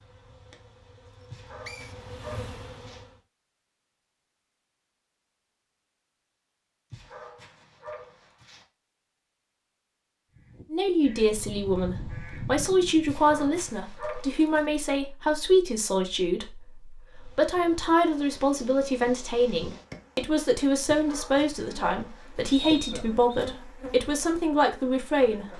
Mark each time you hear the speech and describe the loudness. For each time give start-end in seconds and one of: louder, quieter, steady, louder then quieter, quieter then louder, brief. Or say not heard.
10.7-25.5 steady.